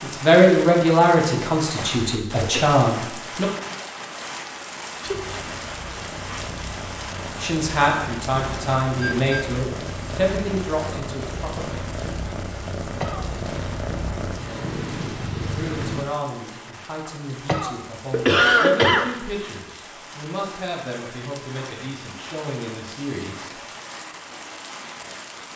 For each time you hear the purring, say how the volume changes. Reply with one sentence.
You can hear the purring from 5.0 to 16.1 s, getting louder.